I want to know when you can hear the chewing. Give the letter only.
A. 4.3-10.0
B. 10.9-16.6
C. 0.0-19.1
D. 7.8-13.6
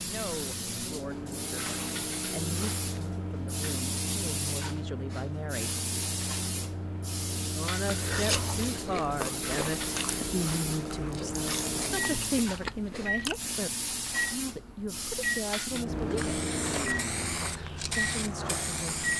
D.